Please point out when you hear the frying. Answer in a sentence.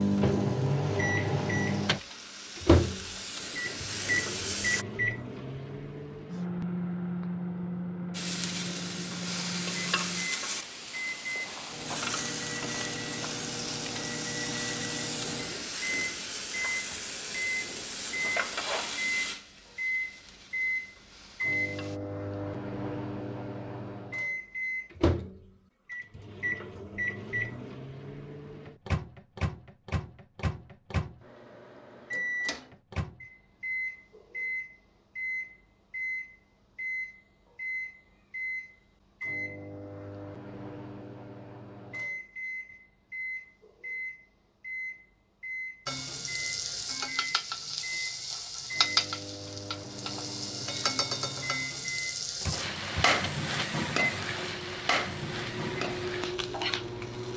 The frying can be heard from 0.0 to 4.8 s, from 8.1 to 22.0 s and from 45.9 to 57.3 s.